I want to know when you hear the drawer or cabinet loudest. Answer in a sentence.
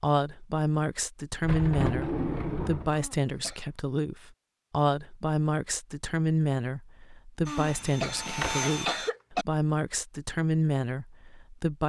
The loudest moment of the drawer or cabinet is at 2 seconds.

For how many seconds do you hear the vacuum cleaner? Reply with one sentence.
You can hear the vacuum cleaner for 2 seconds altogether.